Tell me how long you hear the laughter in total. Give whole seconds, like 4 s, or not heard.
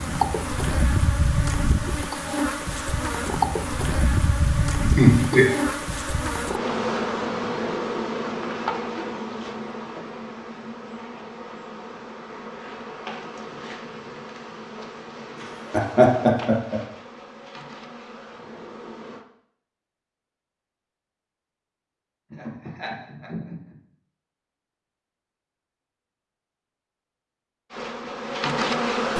3 s.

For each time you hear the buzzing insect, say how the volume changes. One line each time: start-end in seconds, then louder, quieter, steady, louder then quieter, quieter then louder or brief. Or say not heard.
0.0-19.2 quieter
27.7-29.1 brief.